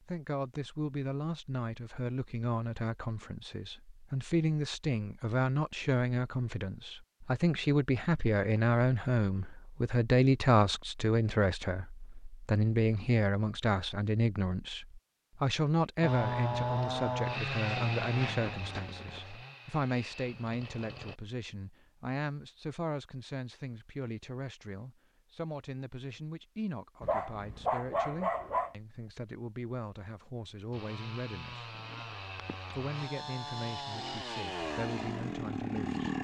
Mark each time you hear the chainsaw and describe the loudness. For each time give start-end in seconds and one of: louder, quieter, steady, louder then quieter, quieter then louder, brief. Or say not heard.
16.0-21.1 quieter
30.7-36.1 louder.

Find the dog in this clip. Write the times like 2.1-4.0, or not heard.
27.0-28.8.